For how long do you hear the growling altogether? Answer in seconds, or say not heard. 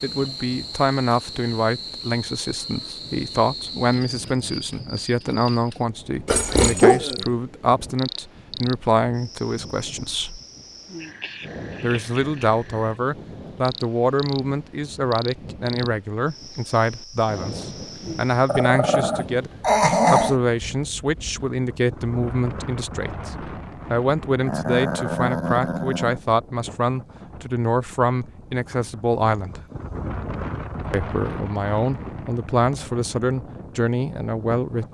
5 s.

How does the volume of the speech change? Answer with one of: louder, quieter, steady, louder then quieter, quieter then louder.
steady.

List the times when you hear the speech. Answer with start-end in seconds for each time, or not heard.
0.0-10.4, 11.8-19.5, 20.1-29.6, 30.9-34.8.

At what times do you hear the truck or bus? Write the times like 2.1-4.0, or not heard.
not heard.